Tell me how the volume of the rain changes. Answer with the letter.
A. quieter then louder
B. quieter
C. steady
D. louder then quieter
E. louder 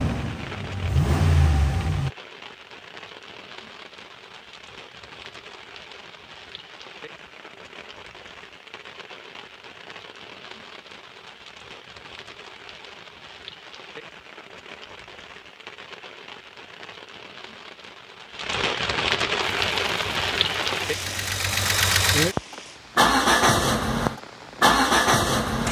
E.